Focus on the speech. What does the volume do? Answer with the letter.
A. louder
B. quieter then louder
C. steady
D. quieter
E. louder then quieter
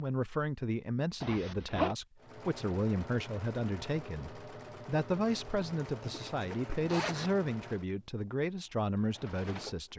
C.